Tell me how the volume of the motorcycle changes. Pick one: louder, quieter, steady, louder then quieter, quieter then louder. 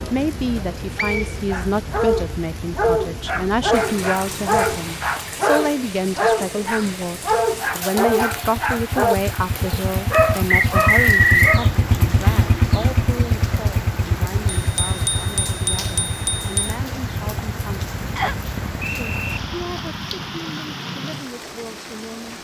louder then quieter.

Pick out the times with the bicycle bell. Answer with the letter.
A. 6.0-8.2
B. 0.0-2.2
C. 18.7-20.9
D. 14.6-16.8
D.